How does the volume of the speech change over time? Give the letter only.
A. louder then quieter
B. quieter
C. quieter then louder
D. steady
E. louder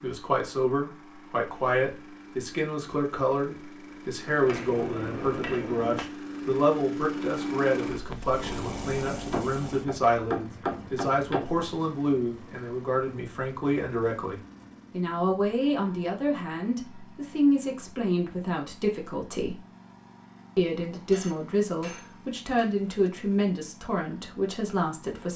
D.